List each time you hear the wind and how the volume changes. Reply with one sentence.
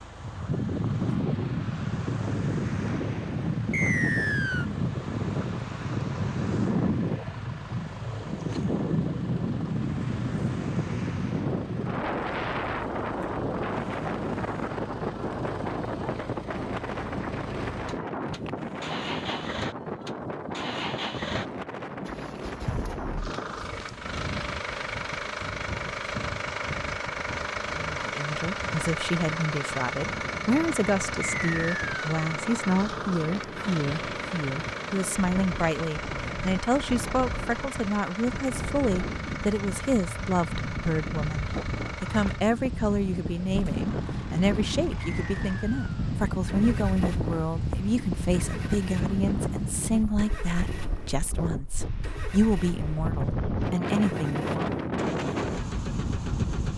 You can hear the wind from 0.0 to 56.7 s, getting quieter then louder.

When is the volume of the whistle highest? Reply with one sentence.
The loudest moment of the whistle is at 4 seconds.